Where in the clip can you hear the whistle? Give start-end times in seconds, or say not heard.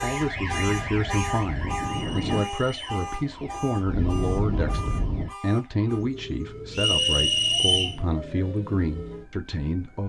1.9-2.9, 6.7-8.0.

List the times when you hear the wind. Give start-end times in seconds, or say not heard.
0.1-5.3.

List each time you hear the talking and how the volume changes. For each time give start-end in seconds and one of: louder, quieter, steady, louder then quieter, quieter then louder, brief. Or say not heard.
0.0-10.0 steady.